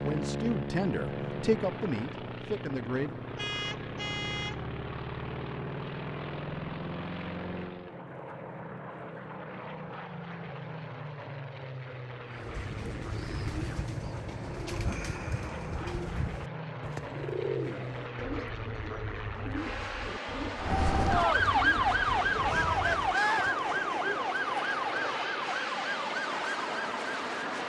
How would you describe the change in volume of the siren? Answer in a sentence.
The volume of the siren goes down.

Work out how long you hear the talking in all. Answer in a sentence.
The talking can be heard for 3 seconds in total.